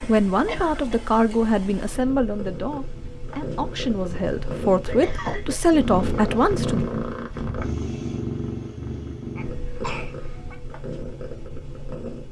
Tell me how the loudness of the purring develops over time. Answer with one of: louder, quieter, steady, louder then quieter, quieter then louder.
louder then quieter.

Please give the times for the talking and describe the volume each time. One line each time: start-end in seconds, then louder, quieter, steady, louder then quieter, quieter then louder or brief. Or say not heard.
0.0-6.8 quieter then louder.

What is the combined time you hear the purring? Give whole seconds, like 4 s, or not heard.
12 s.